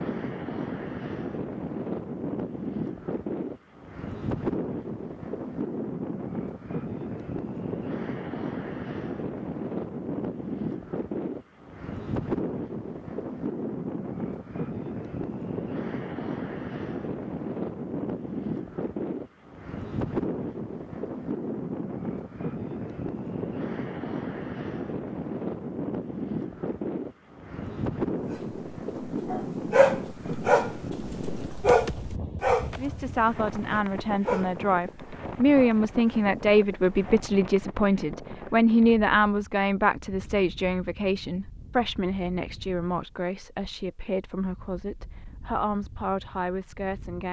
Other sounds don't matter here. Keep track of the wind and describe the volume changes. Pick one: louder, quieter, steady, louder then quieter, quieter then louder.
quieter.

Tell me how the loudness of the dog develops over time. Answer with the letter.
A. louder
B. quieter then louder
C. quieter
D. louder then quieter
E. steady
C.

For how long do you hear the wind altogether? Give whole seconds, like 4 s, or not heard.
47 s.